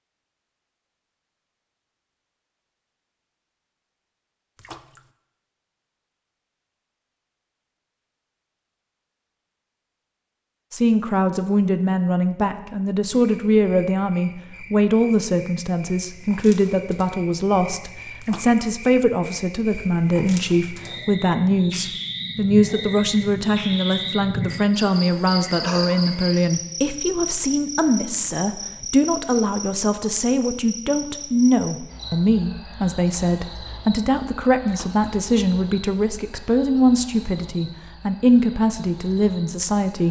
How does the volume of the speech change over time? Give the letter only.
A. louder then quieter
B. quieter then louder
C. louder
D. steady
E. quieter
D.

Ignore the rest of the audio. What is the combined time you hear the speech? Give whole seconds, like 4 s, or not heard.
29 s.